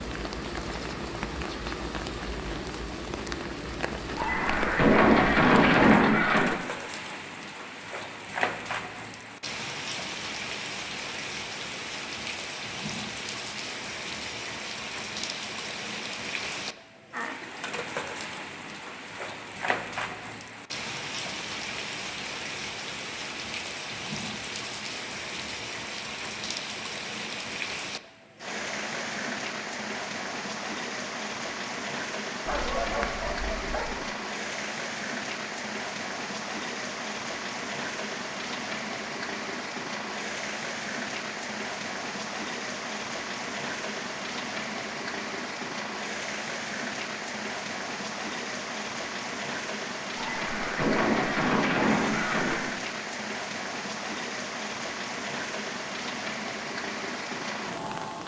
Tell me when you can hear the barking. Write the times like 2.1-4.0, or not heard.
32.5-34.0.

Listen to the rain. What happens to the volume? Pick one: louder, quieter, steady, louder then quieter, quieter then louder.
steady.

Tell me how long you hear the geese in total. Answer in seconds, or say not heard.
5 s.